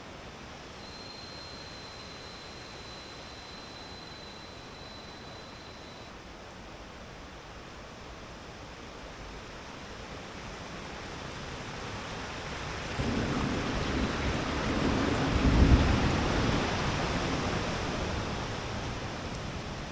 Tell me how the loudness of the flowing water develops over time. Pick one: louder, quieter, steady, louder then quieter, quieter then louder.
louder.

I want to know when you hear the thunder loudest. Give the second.
16 s.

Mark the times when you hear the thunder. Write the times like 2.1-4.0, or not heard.
12.9-16.7.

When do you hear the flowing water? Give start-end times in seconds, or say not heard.
0.0-19.8.